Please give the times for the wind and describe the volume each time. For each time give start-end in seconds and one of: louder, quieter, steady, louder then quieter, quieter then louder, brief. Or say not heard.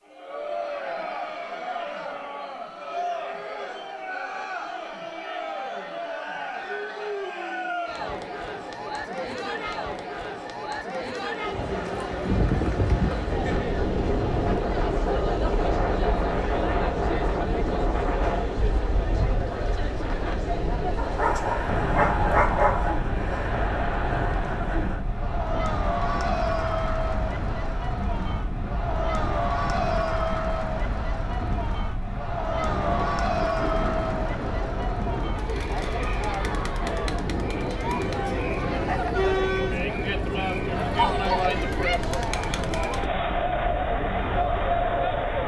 11.4-45.4 quieter.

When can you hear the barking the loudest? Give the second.
23 s.